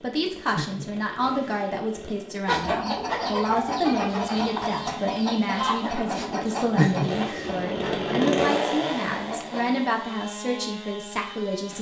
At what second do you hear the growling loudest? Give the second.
7 s.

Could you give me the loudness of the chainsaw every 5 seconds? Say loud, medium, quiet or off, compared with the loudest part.
medium, loud, medium.